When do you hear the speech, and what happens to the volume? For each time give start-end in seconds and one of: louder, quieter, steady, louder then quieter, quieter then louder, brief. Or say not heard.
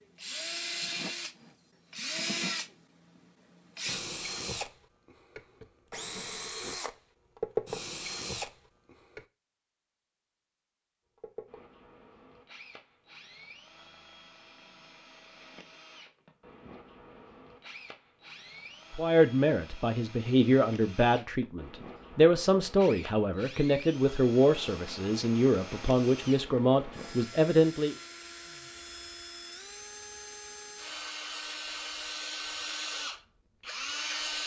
18.9-27.9 steady.